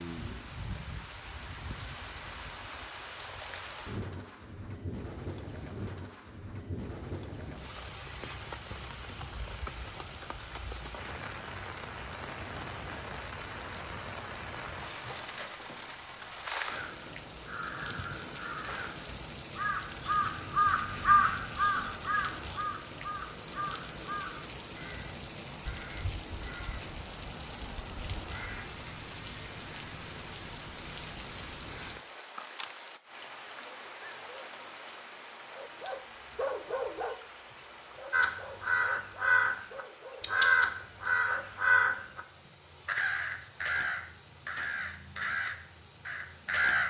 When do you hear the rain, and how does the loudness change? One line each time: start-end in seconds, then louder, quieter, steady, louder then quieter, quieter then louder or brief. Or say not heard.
0.0-46.8 quieter.